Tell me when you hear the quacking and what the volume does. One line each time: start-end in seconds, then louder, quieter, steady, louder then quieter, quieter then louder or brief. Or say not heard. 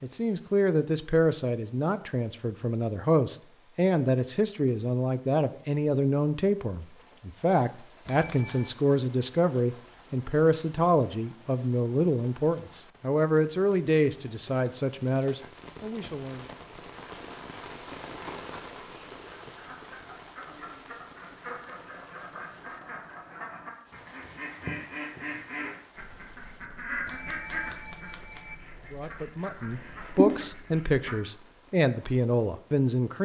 19.2-31.1 louder.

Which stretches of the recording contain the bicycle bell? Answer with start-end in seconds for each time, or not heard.
8.1-8.8, 27.1-28.6.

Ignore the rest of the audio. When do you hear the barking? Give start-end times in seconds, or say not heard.
not heard.